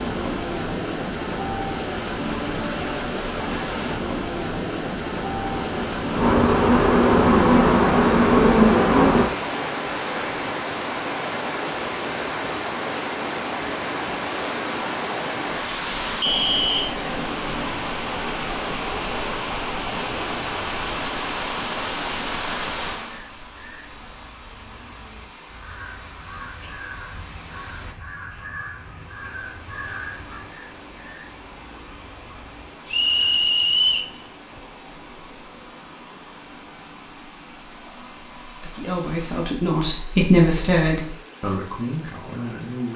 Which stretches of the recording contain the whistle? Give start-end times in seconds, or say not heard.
16.2-16.9, 32.9-34.1.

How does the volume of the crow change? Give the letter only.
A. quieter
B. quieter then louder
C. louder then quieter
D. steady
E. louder
C.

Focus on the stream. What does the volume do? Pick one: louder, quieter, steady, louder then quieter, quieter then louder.
quieter.